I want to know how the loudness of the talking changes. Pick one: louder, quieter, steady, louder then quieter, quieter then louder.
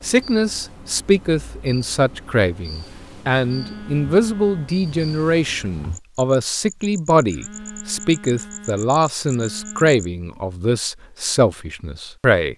steady.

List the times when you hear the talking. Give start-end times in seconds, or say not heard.
0.0-12.5.